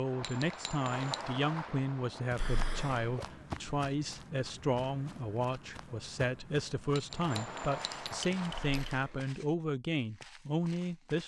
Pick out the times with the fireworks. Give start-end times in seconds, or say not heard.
0.0-3.5, 7.1-8.9.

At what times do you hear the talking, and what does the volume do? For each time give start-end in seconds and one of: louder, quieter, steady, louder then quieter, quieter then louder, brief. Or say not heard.
0.0-11.2 steady.